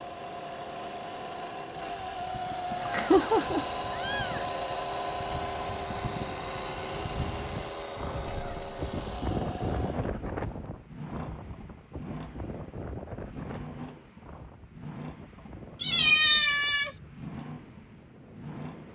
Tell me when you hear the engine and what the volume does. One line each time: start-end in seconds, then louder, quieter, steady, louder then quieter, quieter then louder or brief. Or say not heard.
0.0-18.8 quieter.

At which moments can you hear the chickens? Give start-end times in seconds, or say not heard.
not heard.